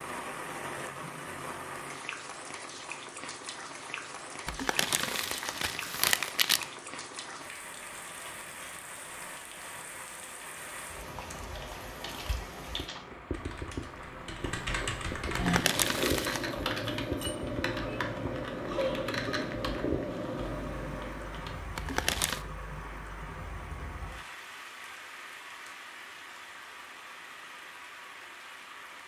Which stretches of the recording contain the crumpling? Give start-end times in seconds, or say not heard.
4.5-6.7, 15.3-16.5, 21.8-22.4.